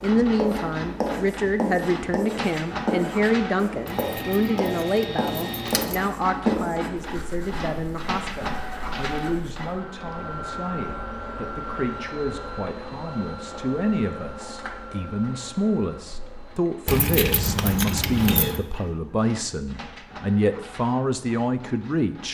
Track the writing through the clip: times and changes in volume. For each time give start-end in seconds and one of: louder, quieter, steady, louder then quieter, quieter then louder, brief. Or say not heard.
0.2-9.6 quieter.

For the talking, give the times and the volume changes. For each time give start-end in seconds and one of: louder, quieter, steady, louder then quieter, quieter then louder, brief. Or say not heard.
0.0-22.2 quieter then louder.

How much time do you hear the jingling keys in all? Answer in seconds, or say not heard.
4 s.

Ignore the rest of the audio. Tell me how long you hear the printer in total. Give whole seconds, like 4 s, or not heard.
22 s.